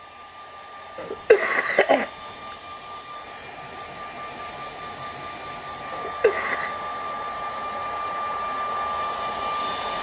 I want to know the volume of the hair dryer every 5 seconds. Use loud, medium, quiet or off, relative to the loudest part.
medium, loud.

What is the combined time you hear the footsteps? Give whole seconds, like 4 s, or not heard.
not heard.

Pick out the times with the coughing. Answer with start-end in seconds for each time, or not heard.
0.9-2.1, 5.9-6.8.